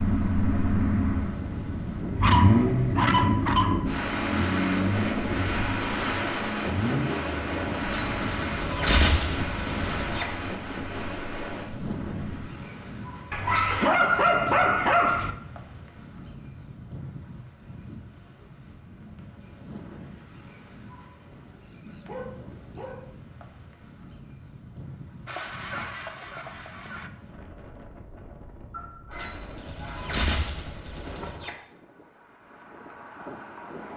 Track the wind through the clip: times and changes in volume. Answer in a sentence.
The wind can be heard from 0.0 to 33.9 s, getting quieter.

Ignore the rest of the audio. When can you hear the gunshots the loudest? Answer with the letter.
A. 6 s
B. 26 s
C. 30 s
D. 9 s
D.